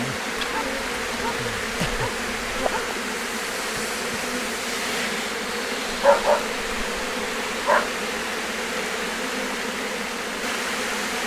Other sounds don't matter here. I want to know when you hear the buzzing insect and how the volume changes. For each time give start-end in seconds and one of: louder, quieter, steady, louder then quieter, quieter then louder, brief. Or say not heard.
0.0-11.2 steady.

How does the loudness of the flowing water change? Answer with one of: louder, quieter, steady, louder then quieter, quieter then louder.
steady.